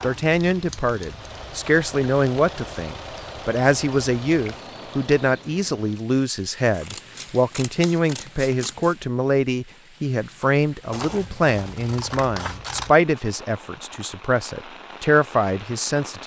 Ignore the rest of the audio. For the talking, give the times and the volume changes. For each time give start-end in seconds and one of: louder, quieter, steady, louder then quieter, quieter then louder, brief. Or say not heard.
0.0-16.2 steady.